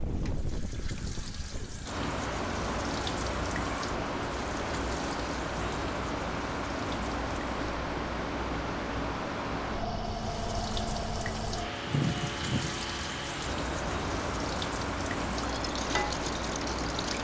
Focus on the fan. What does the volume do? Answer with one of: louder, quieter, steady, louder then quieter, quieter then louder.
steady.